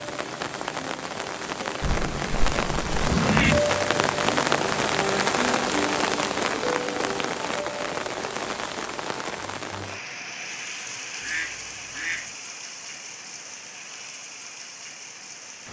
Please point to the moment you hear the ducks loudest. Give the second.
3 s.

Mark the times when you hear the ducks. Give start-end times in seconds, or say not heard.
1.8-3.6, 11.2-12.3.